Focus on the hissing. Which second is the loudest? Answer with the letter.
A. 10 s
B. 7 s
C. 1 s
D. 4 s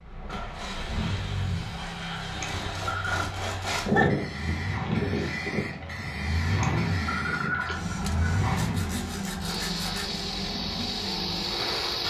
D.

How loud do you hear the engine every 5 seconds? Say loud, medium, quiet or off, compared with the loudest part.
medium, loud, loud.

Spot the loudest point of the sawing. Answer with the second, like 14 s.
4 s.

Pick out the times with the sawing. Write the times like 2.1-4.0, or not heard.
2.5-4.1, 8.0-10.2.